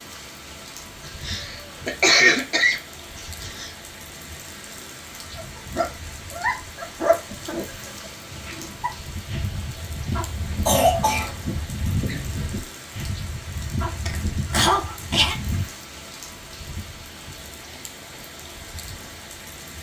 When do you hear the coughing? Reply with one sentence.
The coughing can be heard from 1.2 to 3.7 s, from 10.7 to 11.3 s and from 14.1 to 15.3 s.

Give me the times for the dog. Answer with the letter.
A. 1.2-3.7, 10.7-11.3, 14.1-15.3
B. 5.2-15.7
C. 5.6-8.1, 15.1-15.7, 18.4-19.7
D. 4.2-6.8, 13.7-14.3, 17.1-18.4
B.